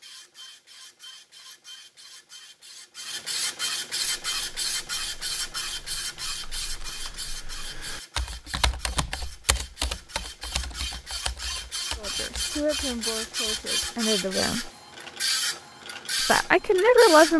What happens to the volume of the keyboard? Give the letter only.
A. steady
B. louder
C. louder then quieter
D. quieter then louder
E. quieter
C.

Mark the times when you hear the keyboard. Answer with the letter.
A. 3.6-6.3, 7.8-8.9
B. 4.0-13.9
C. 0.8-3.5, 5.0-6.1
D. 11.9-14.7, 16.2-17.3
B.